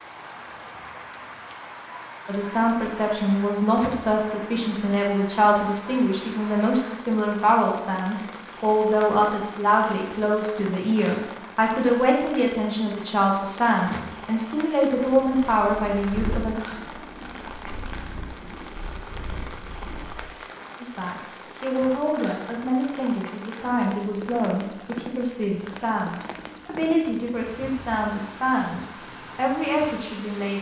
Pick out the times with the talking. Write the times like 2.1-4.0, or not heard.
2.2-16.6, 20.8-30.5.